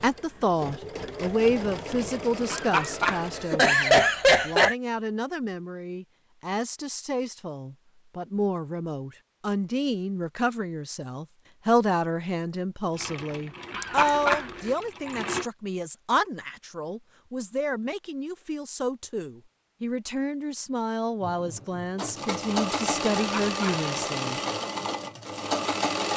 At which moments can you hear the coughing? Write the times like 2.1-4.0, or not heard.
2.5-4.8, 13.7-14.7, 23.1-23.8.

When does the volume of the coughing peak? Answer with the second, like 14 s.
4 s.